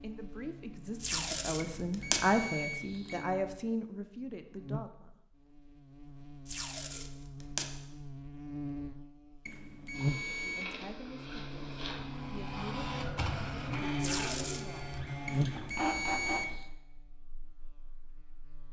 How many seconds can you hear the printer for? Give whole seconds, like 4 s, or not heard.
7 s.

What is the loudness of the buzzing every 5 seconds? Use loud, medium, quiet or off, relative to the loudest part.
medium, medium, loud, loud.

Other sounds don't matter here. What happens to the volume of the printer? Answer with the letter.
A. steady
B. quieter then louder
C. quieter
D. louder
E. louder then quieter
D.